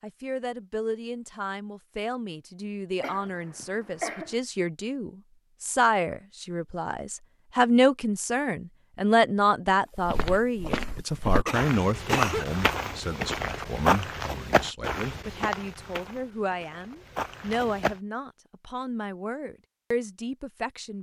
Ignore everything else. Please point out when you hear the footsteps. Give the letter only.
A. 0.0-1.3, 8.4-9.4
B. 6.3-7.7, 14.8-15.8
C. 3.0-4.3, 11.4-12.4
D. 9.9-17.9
D.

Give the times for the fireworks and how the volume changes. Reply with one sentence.
You can't hear the fireworks here.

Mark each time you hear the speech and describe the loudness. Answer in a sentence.
The speech can be heard from 0.0 to 20.9 s, getting louder then quieter.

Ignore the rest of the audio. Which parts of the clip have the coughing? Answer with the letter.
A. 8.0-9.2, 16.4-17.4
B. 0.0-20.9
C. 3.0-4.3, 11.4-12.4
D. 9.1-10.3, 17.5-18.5
C.